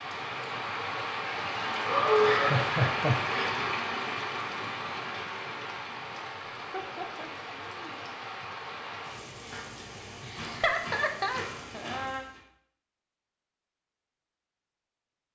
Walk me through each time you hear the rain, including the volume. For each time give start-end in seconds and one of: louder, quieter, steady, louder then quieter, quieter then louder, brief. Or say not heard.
0.0-12.4 quieter.